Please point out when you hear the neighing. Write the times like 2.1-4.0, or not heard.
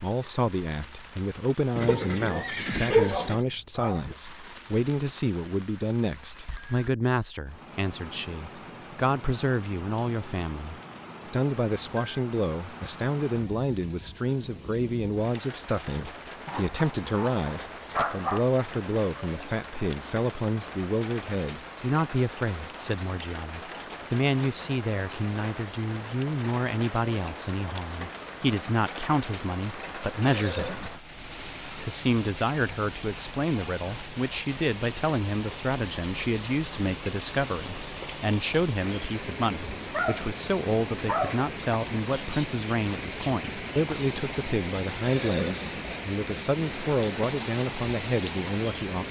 1.8-3.5, 30.2-31.0, 45.0-45.8.